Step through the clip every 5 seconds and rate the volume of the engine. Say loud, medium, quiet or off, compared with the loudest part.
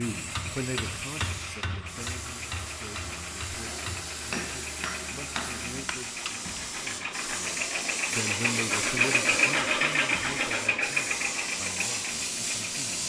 quiet, loud, loud.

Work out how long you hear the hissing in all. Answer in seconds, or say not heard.
13 s.